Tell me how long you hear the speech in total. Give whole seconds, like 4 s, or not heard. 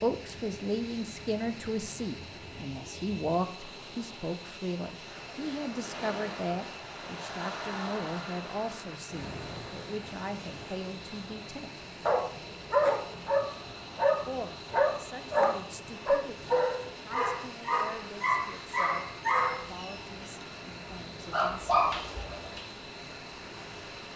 19 s.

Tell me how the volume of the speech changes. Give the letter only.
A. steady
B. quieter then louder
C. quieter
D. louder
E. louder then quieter
C.